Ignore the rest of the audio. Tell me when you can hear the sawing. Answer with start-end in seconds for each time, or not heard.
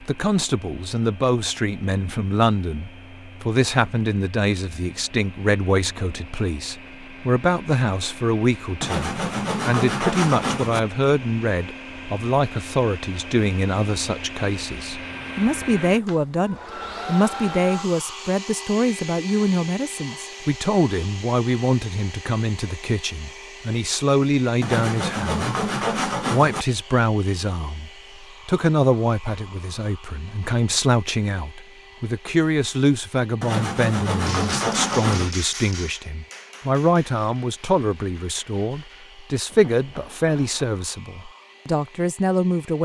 8.8-10.8, 24.6-26.6, 33.4-35.3.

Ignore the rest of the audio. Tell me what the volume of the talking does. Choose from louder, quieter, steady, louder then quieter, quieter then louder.
steady.